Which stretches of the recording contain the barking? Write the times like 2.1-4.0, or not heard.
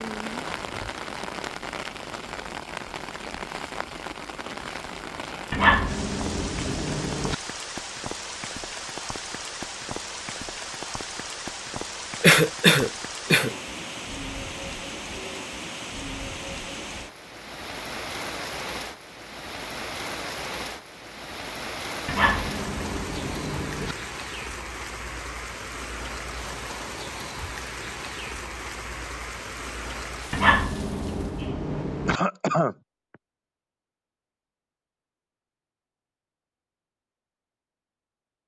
5.5-7.3, 22.1-23.9, 30.3-32.2.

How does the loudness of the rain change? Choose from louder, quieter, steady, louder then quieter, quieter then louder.
steady.